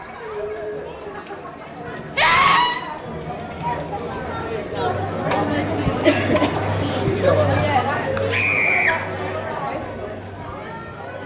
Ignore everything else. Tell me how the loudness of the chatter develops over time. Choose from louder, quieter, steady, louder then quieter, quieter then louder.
louder then quieter.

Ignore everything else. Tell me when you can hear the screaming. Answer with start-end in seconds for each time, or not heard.
2.1-2.8, 8.3-8.9.